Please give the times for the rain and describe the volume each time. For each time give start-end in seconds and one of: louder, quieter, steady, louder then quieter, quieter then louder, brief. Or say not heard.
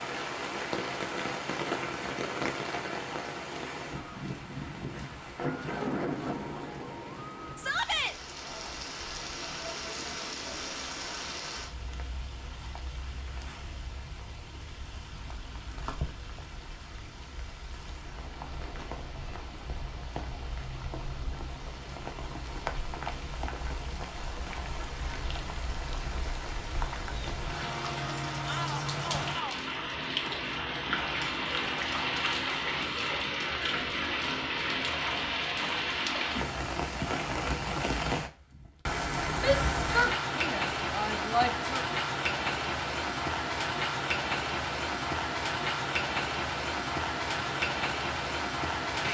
0.0-49.0 quieter then louder.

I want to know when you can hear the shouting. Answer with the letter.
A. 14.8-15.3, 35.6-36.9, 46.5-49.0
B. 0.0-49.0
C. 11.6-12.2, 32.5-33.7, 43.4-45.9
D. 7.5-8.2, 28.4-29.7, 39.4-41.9
D.